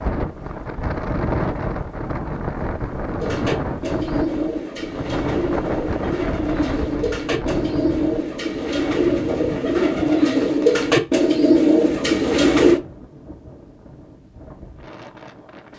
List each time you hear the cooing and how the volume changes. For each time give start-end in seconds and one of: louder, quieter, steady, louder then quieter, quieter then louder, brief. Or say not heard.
3.1-12.8 louder.